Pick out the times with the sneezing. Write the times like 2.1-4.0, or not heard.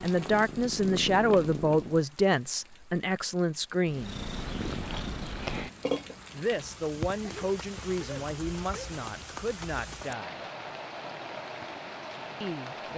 7.2-8.9.